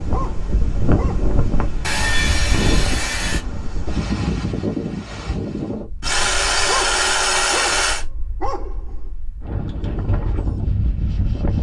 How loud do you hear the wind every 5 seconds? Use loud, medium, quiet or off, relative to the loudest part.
loud, medium, loud.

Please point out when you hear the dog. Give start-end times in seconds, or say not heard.
0.1-1.4, 6.7-9.1.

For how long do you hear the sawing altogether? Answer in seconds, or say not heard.
4 s.